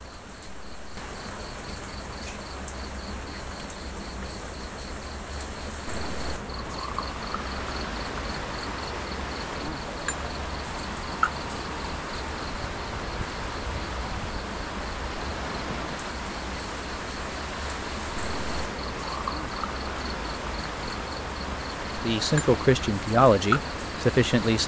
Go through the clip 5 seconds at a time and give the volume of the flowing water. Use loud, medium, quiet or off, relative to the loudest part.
off, loud, loud, loud, loud.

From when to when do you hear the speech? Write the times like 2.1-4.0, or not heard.
22.0-24.6.